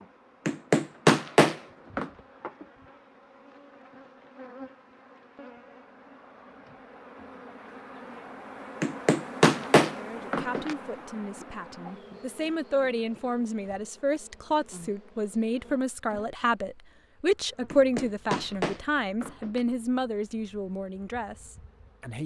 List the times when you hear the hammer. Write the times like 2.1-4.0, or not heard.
0.5-2.1, 8.8-10.8, 17.7-19.6.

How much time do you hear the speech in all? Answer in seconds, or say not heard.
12 s.